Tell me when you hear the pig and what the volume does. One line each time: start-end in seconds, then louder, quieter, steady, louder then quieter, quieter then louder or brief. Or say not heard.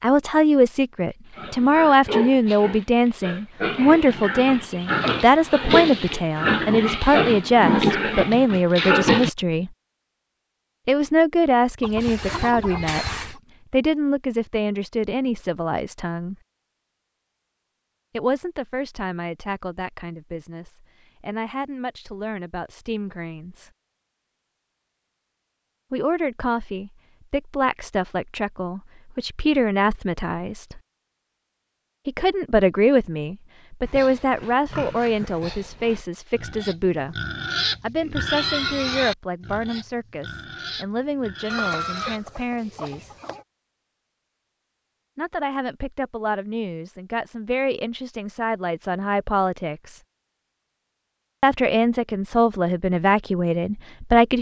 1.4-9.3 louder
33.9-42.2 louder then quieter.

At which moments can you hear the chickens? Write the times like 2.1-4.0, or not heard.
11.8-13.4, 41.5-43.5.